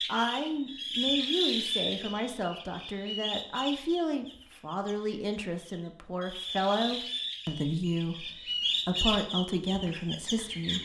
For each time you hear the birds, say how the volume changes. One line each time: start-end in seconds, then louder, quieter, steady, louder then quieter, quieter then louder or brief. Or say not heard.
0.0-10.8 quieter then louder.